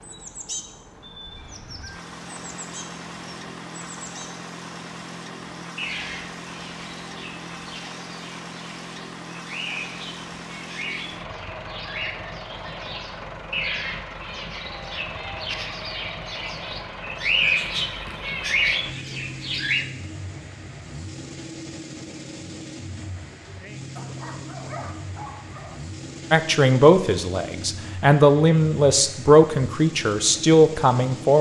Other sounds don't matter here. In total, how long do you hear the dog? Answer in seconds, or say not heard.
2 s.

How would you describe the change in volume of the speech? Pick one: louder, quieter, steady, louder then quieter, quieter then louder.
steady.